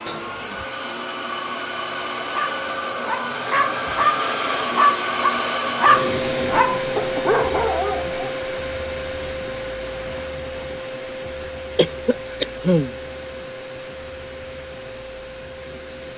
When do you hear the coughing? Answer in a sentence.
You can hear the coughing from 0.1 to 0.7 s, from 7.0 to 7.4 s and from 11.8 to 12.9 s.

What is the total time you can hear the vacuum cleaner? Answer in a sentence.
The vacuum cleaner can be heard for 16 seconds in total.